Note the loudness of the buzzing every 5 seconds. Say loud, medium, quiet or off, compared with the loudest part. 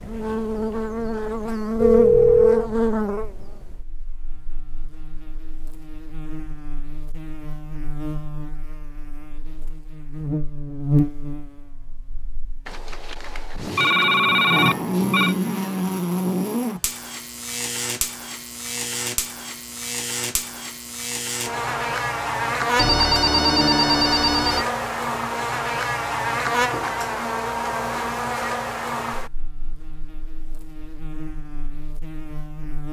loud, quiet, loud, loud, loud, loud, quiet.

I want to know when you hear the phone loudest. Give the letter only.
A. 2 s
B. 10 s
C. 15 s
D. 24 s
A.